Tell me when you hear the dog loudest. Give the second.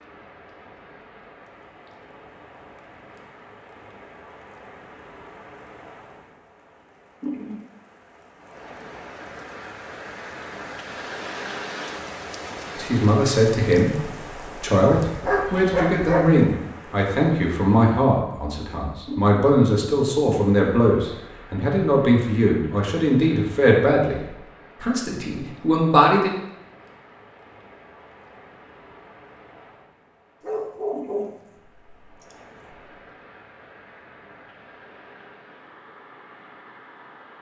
16 s.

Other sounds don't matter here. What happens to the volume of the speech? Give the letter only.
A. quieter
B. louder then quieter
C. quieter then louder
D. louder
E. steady
E.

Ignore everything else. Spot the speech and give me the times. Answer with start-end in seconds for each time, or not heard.
12.8-26.3.